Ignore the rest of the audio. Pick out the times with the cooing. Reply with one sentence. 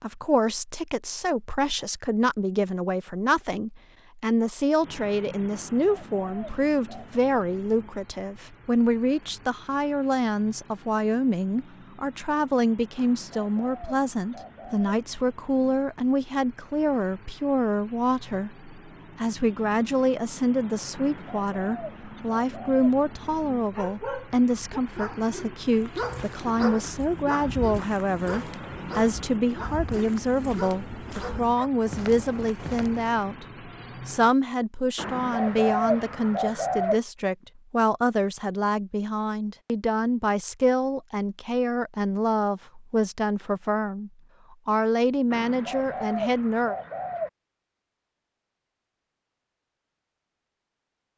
You can hear the cooing from 5.5 to 7.2 s, from 12.9 to 14.9 s, from 20.9 to 22.9 s, from 35.0 to 37.0 s and from 45.3 to 47.3 s.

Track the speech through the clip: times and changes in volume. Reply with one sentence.
The speech can be heard from 0.0 to 33.4 s, at a steady volume; and from 34.0 to 46.8 s, at a steady volume.